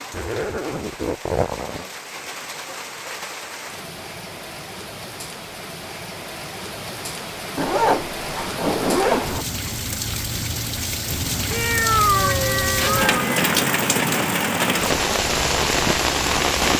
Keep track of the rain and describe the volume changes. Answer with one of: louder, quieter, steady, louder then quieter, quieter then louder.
louder.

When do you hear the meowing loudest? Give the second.
12 s.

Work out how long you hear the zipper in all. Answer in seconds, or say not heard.
4 s.